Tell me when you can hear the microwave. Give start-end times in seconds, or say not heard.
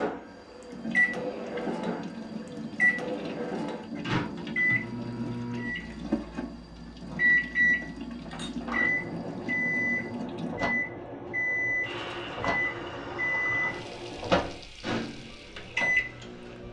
0.0-16.6.